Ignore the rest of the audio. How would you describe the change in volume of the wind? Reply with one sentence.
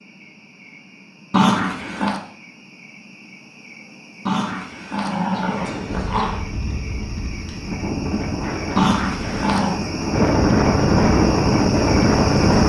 The volume of the wind goes up.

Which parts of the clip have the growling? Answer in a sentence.
You can hear the growling from 1.3 to 2.2 s, from 4.2 to 6.5 s and from 8.8 to 9.8 s.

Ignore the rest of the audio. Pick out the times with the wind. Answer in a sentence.
You can hear the wind from 5.5 to 12.6 s.